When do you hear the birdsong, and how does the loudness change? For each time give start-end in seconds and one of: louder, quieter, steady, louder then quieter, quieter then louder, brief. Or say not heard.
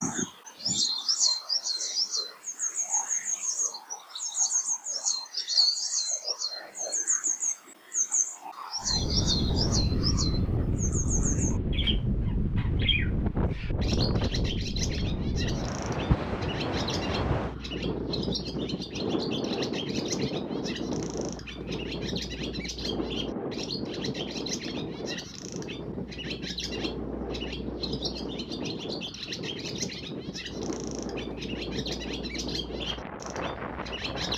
0.0-34.3 quieter.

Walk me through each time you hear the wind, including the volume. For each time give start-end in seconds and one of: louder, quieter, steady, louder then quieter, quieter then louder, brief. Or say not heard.
8.8-34.3 quieter.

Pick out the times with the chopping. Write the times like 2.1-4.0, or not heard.
not heard.